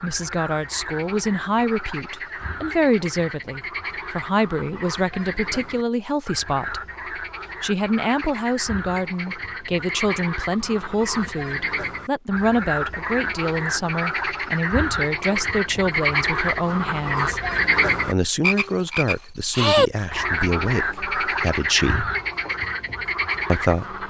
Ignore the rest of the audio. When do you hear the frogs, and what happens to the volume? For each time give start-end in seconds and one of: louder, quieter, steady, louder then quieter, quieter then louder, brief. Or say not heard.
0.0-24.0 louder.